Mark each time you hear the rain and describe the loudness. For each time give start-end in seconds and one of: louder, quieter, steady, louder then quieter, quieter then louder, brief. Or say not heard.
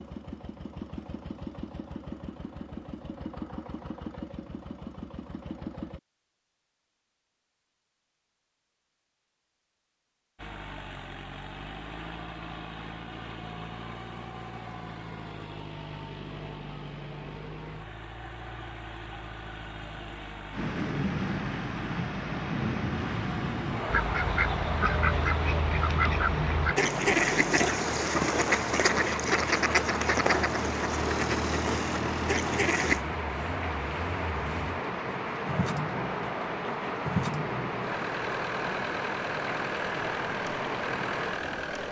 20.5-41.8 steady.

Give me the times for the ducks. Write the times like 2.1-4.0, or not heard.
23.9-33.0.